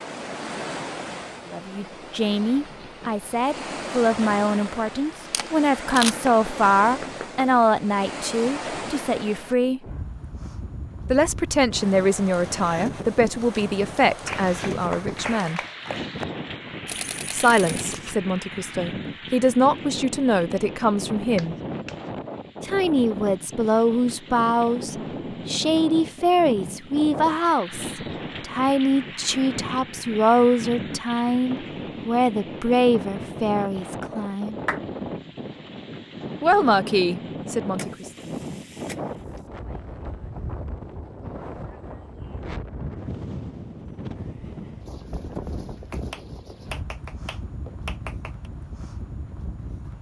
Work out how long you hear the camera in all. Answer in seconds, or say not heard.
4 s.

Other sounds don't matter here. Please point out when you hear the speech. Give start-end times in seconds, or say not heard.
1.4-9.8, 11.1-15.6, 17.3-21.6, 22.6-34.5, 36.4-38.1.